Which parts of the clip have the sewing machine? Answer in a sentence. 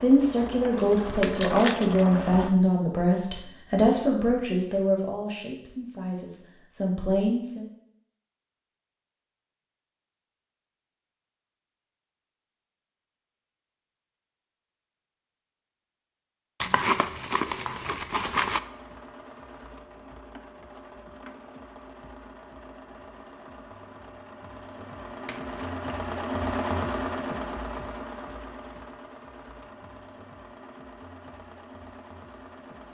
You can hear the sewing machine from 0.0 to 2.5 s and from 18.4 to 32.8 s.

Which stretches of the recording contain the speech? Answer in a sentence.
You can hear the speech from 0.0 to 7.7 s.